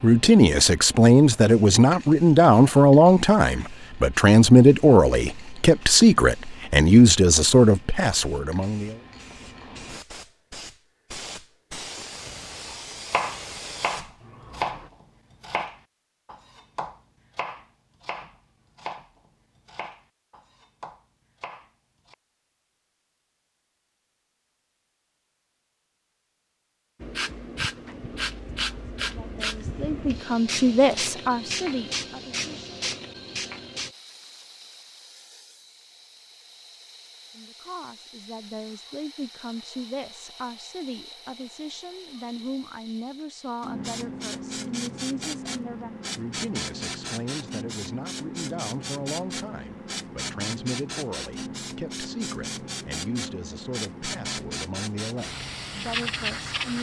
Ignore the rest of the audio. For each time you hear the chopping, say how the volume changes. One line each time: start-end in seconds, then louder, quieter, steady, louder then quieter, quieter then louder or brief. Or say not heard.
12.7-22.1 quieter.